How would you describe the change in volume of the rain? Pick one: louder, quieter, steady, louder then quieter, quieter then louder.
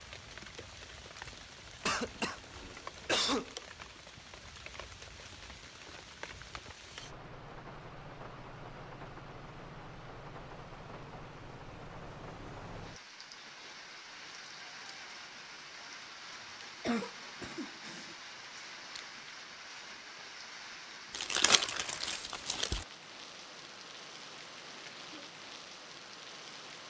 steady.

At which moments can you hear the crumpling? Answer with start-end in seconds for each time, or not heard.
21.1-22.9.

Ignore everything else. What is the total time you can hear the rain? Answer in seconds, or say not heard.
27 s.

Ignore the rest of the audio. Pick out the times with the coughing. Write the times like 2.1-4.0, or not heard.
1.9-3.5, 16.8-18.1.